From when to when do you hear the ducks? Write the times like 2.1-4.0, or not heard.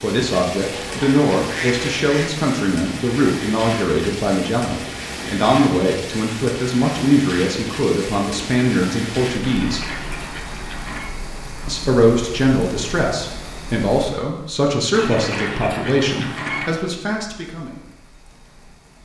0.6-2.3, 9.4-11.1, 14.9-16.8.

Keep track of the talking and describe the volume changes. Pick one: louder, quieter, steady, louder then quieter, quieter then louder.
steady.